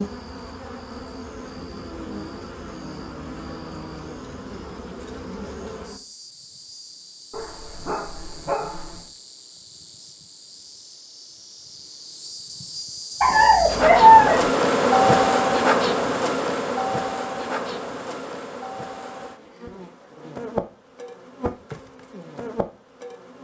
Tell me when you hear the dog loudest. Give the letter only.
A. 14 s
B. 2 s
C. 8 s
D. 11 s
A.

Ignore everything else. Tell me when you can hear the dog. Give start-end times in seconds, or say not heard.
7.3-9.1, 13.2-14.4.